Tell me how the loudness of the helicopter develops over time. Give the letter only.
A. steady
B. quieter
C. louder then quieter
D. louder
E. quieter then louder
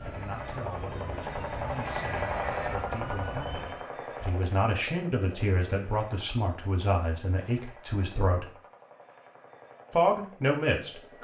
B.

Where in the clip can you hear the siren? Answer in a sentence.
You can hear the siren from 0.0 to 3.9 s.